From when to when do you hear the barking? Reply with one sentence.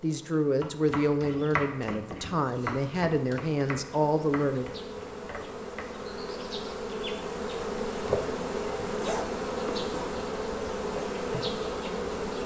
You can't hear the barking here.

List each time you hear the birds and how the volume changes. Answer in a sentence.
The birds can't be heard in this clip.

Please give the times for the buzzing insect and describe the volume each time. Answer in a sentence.
You can hear the buzzing insect from 0.0 to 12.4 s, getting louder.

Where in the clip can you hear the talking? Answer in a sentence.
You can hear the talking from 0.0 to 4.7 s.